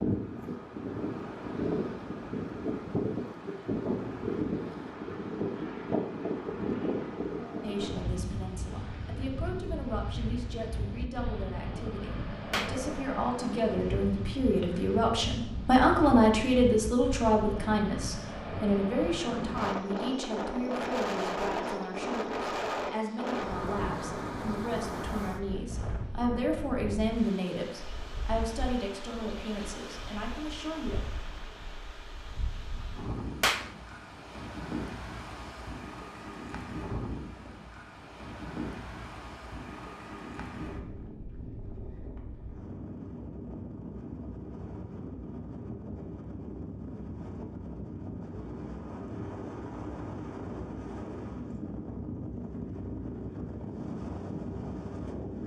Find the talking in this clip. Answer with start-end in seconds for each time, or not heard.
7.6-31.0.